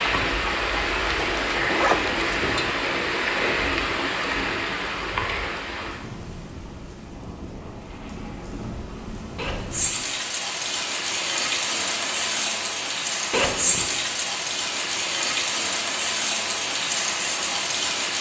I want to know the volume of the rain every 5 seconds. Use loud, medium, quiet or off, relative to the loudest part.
loud, medium, loud, loud.